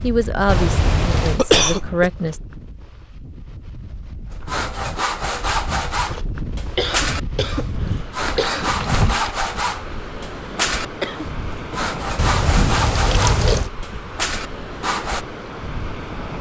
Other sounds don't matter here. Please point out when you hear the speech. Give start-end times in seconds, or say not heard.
0.0-2.4.